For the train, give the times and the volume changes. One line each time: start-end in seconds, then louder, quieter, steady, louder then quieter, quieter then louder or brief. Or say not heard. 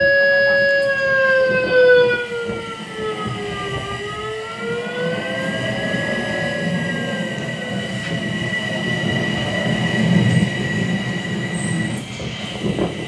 0.0-13.0 louder.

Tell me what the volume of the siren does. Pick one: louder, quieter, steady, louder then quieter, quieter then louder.
quieter.